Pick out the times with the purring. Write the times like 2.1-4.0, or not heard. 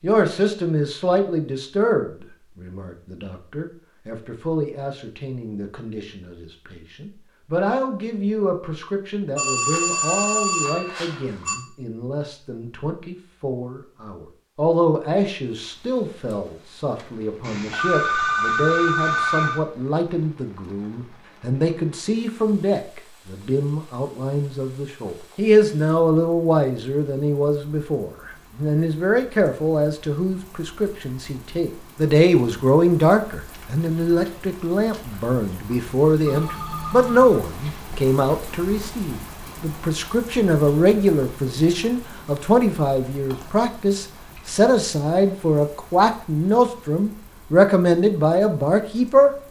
not heard.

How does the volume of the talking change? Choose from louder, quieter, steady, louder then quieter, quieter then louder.
louder.